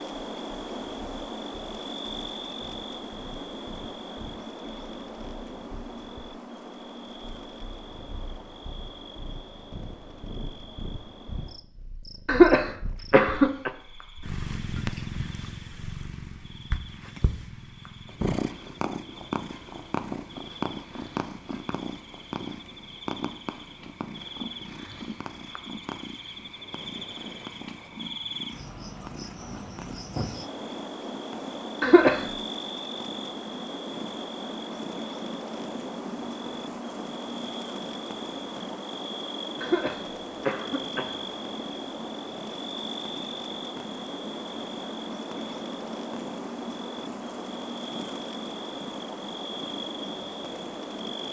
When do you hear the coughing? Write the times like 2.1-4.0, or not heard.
12.2-13.7, 31.8-32.2, 39.6-41.1.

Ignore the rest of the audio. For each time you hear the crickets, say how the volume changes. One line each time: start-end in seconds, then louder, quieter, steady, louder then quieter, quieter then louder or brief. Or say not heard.
0.0-51.2 quieter then louder.